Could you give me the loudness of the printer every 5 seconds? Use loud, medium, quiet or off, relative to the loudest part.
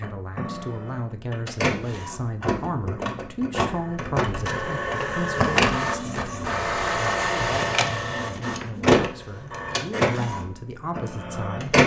medium, loud, loud.